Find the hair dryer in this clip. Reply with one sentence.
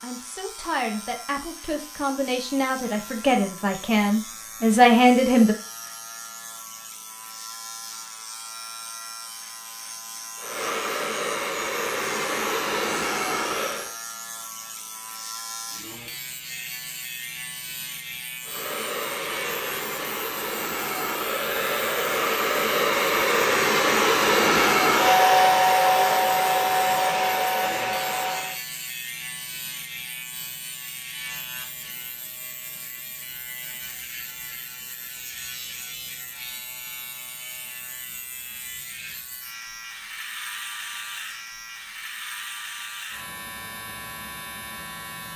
You can hear the hair dryer from 10.3 to 13.9 s and from 18.4 to 28.6 s.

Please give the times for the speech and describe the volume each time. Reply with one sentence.
You can hear the speech from 0.0 to 5.5 s, getting louder.